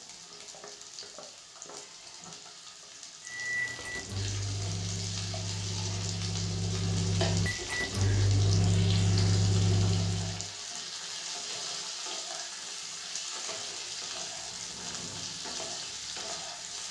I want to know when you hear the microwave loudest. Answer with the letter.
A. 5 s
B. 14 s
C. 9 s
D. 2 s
C.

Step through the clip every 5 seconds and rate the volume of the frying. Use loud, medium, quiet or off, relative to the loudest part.
medium, loud, loud, loud.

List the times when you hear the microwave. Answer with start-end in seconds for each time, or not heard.
3.2-10.4.